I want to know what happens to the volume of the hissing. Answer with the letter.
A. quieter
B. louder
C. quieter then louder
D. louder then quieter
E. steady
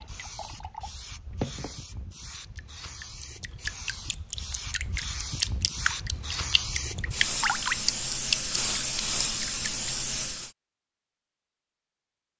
B.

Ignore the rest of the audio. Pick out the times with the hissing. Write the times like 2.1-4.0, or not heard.
0.0-10.5.